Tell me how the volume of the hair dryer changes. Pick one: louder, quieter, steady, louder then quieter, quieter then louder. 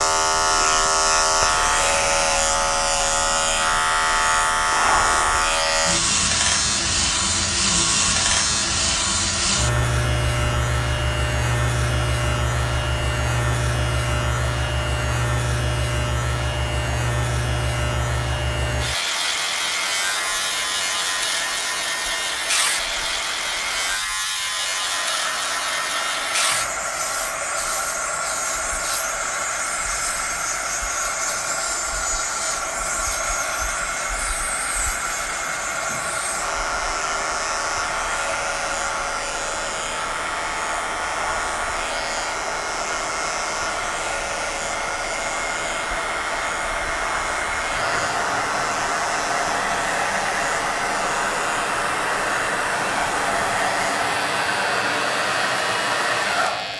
louder.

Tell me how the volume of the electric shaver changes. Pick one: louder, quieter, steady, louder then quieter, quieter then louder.
quieter.